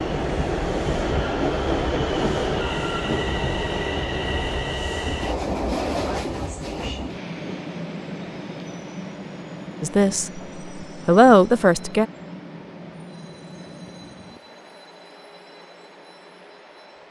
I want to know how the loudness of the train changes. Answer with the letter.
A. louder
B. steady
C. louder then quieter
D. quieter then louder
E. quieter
E.